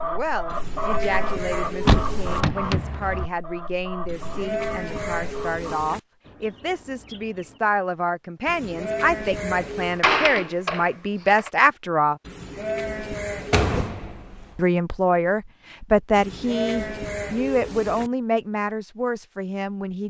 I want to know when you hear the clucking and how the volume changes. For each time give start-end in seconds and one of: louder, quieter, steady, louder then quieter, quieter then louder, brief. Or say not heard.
0.0-7.6 quieter.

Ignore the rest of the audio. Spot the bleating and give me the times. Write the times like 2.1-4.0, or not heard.
0.5-2.5, 4.0-6.0, 8.4-10.0, 12.2-13.9, 16.1-18.1.